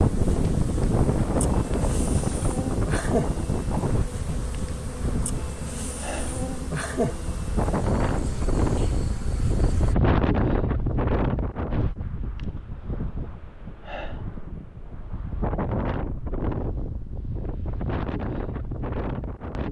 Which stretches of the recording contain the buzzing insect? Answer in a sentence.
You can hear the buzzing insect from 0.0 to 9.9 s.